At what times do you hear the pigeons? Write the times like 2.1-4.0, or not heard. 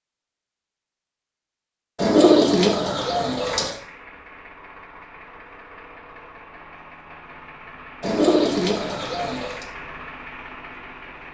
1.9-3.8, 8.0-9.7.